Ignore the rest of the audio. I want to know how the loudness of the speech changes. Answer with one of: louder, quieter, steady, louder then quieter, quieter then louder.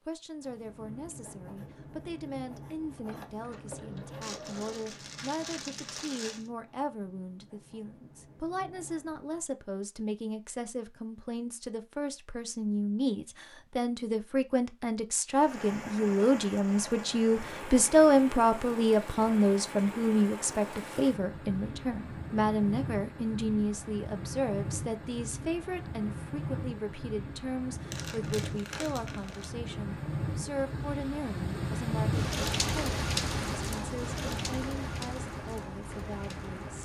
louder then quieter.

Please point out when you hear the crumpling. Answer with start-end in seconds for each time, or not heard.
4.2-6.5, 27.9-29.5.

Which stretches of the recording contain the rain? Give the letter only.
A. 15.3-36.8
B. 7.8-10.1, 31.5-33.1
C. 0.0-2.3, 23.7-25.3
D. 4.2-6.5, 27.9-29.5
A.